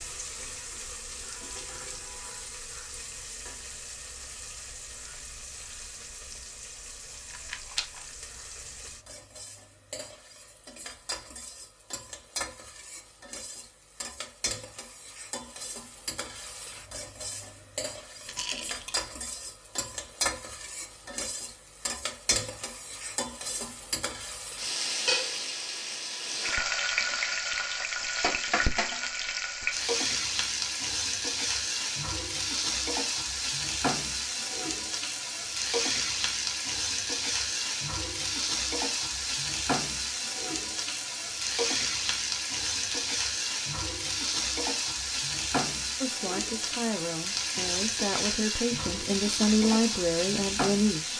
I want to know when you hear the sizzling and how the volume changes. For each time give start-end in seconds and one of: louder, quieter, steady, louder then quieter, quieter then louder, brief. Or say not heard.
0.0-51.1 louder.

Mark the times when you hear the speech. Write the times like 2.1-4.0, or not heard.
46.0-51.1.